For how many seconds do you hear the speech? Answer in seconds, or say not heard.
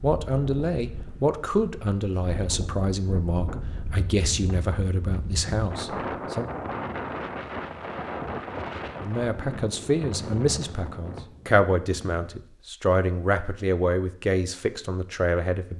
13 s.